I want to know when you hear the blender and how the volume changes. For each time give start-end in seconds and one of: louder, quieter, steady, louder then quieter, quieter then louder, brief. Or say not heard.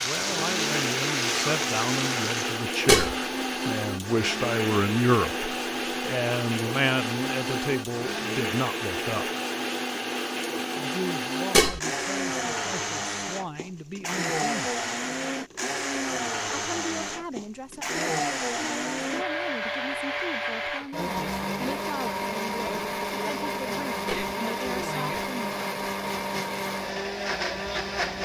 0.1-28.1 steady.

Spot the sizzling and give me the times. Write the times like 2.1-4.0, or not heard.
0.0-2.6.